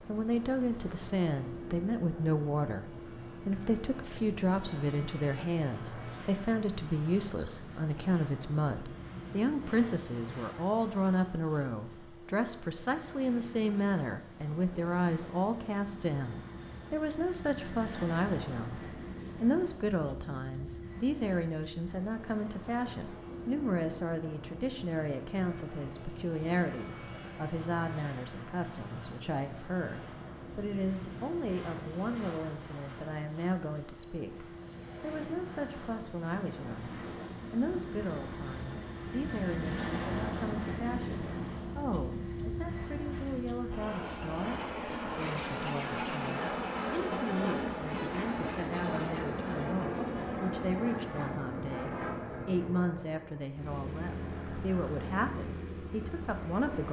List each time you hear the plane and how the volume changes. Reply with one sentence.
The plane can be heard from 0.0 to 56.8 s, getting louder.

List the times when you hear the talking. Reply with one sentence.
You can hear the talking from 0.1 to 18.8 s and from 19.4 to 56.8 s.